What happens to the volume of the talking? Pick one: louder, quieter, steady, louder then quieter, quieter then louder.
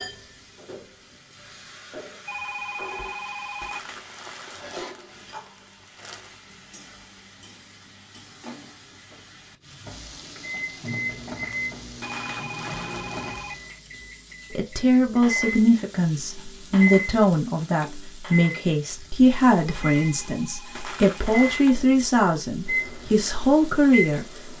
steady.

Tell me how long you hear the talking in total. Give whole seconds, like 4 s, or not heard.
10 s.